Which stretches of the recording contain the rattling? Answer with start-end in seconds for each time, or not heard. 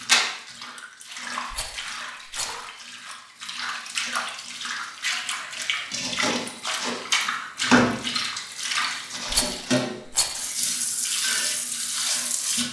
1.5-2.7, 9.3-10.5.